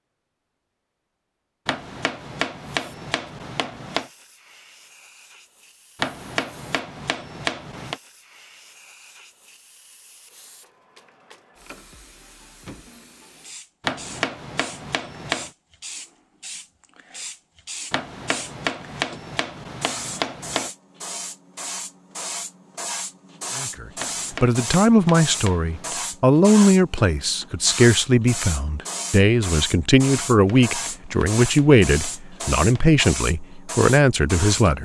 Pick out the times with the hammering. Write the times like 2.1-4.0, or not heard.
1.6-4.1, 6.0-8.0, 13.8-15.5, 17.9-20.7, 23.9-26.0, 30.2-33.0.